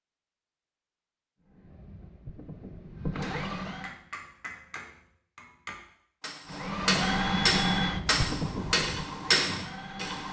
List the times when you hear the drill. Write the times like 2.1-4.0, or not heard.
1.5-4.0, 6.5-10.2.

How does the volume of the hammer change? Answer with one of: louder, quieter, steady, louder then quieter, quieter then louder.
louder.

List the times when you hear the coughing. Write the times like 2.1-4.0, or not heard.
not heard.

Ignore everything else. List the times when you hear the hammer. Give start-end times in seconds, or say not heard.
3.0-10.2.